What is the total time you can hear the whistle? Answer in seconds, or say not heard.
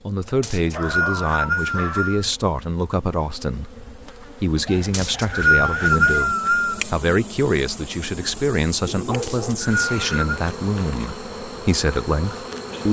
5 s.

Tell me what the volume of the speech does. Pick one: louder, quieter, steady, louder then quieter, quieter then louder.
steady.